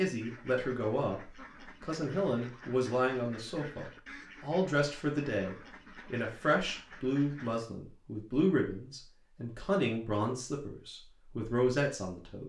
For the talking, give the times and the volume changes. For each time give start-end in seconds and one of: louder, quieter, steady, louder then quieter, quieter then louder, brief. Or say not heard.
0.0-12.4 steady.